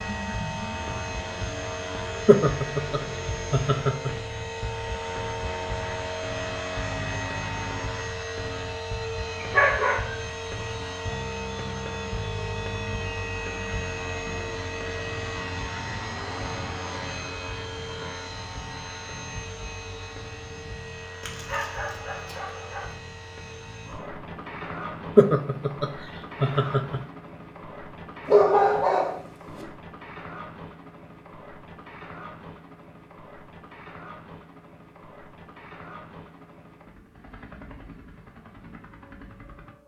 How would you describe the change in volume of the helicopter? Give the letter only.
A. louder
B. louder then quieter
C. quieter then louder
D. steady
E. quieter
E.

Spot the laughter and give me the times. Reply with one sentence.
The laughter can be heard from 2.2 to 4.2 s and from 25.1 to 27.0 s.